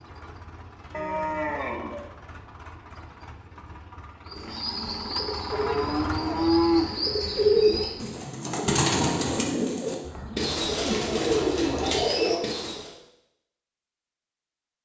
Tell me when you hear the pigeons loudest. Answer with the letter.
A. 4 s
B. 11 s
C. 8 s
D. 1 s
C.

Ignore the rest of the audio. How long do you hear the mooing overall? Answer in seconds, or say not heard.
5 s.